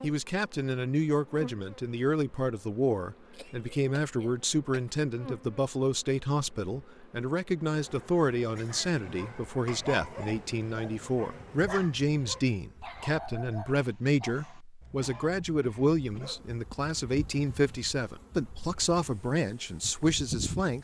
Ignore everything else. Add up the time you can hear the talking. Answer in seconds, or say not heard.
21 s.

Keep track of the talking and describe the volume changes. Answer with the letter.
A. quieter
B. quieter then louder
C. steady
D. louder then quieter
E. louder
C.